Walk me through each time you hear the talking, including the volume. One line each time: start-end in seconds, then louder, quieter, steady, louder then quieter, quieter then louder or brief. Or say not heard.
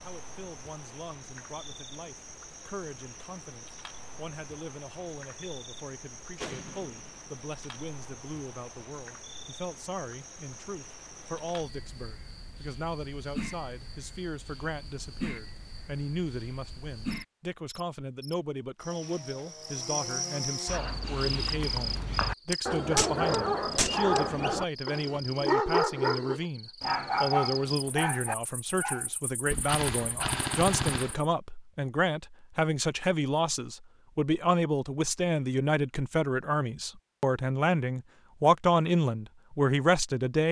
0.0-40.4 louder.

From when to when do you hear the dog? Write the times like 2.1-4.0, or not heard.
20.6-29.1.